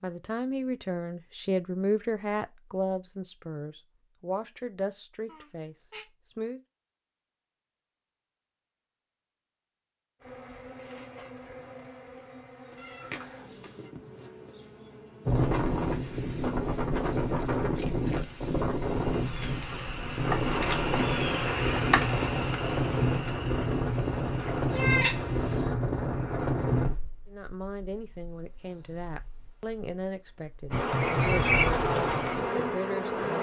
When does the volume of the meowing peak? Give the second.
25 s.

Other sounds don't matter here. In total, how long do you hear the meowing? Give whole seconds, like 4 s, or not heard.
3 s.